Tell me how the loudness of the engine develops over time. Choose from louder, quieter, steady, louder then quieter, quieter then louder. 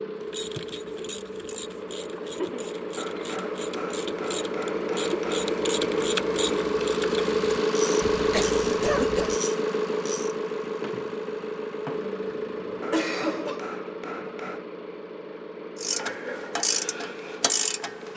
louder then quieter.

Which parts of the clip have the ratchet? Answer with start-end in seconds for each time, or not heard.
0.2-10.3, 15.8-18.1.